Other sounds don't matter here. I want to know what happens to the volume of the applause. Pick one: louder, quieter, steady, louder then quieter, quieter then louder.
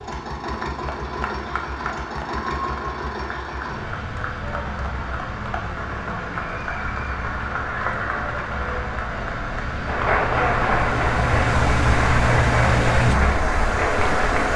louder.